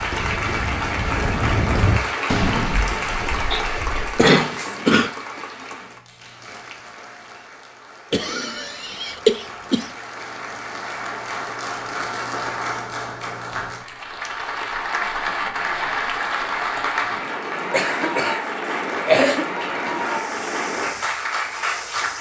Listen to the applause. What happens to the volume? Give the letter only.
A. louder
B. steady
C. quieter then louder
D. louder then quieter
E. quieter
C.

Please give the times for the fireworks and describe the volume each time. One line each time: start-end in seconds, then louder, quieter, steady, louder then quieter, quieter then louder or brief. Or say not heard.
0.0-4.8 louder then quieter.